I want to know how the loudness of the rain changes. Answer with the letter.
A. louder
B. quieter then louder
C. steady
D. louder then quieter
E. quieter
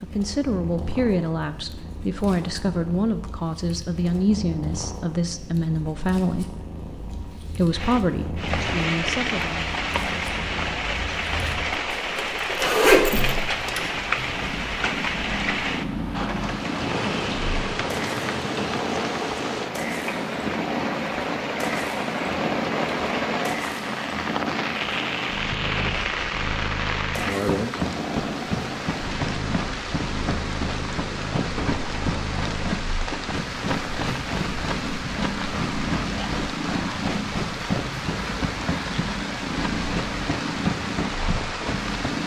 C.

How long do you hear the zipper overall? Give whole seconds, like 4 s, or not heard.
2 s.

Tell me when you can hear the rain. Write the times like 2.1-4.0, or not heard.
7.7-42.2.